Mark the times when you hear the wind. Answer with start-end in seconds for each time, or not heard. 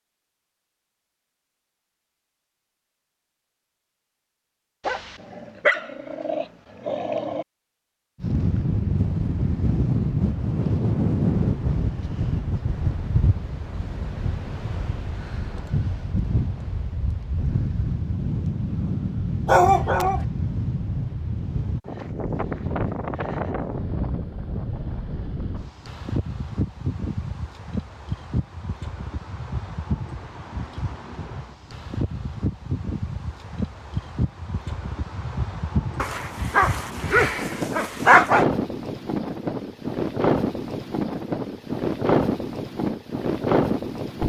8.2-44.2.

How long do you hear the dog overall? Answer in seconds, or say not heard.
6 s.